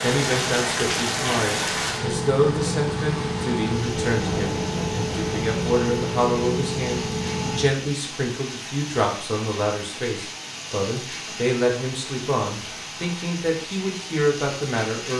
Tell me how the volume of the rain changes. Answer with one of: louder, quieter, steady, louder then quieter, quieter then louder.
quieter.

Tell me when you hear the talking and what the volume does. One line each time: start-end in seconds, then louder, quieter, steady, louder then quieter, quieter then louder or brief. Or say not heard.
0.0-15.1 steady.